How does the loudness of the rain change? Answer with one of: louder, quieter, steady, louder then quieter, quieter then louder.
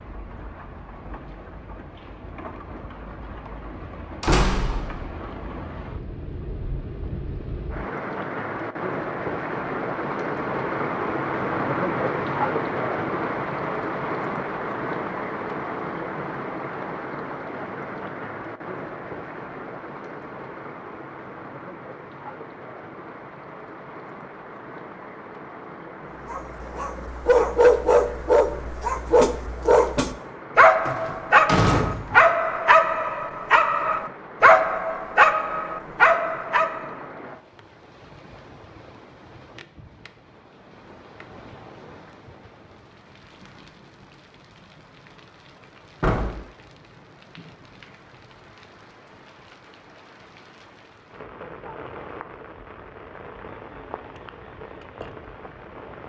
quieter.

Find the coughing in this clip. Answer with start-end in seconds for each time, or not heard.
not heard.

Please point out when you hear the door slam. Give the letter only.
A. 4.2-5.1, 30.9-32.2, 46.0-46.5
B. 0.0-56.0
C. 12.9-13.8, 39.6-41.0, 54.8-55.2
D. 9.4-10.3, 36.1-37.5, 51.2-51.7
A.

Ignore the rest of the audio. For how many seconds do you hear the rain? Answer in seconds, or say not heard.
56 s.